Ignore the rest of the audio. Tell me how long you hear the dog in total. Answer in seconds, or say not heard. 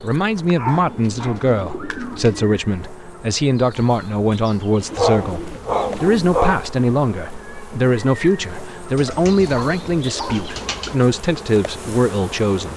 5 s.